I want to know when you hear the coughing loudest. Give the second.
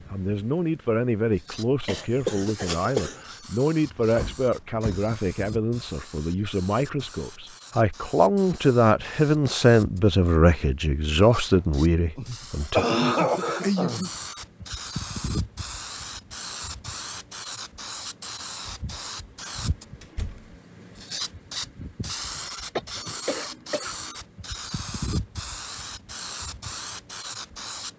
13 s.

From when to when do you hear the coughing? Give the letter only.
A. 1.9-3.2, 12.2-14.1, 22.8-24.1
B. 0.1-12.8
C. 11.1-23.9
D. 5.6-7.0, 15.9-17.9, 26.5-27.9
A.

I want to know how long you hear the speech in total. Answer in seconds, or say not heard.
13 s.